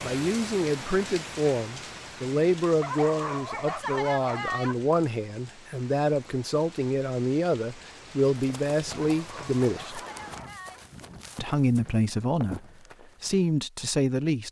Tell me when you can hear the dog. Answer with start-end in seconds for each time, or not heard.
2.8-4.8, 8.9-10.8.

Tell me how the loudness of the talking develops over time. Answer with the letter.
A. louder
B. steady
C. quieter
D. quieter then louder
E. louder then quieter
B.